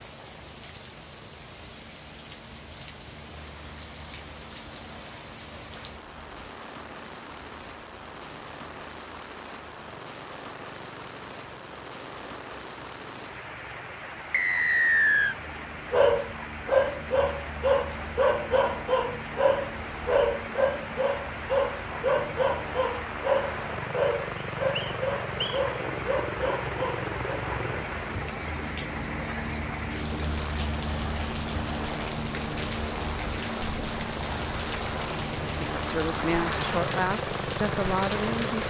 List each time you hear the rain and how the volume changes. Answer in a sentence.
The rain can be heard from 0.0 to 38.6 s, getting louder.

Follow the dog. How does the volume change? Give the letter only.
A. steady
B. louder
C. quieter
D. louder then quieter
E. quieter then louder
C.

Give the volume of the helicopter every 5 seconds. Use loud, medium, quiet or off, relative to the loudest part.
quiet, quiet, quiet, medium, medium, loud, loud, loud.